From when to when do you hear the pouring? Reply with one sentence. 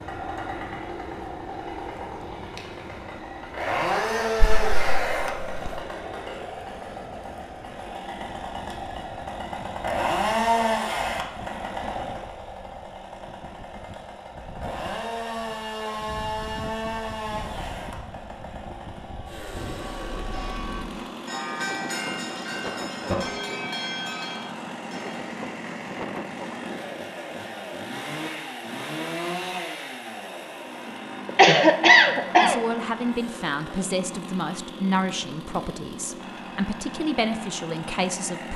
You can't hear the pouring here.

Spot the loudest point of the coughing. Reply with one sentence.
The loudest moment of the coughing is at 32 seconds.